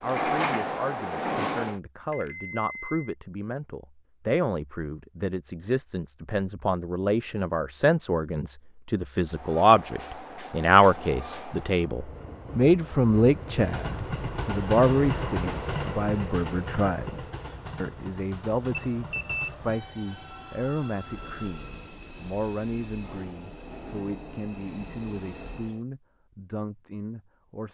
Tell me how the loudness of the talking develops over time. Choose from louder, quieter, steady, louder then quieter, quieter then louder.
louder then quieter.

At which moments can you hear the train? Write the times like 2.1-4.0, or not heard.
0.0-1.8, 9.2-25.9.